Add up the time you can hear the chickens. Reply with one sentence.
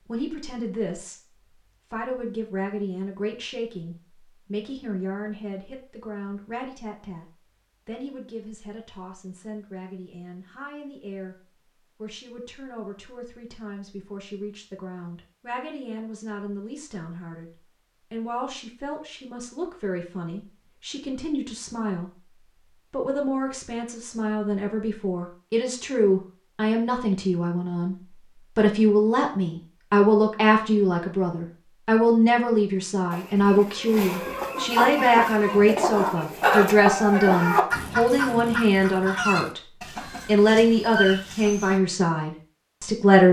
The chickens can be heard for 9 seconds in total.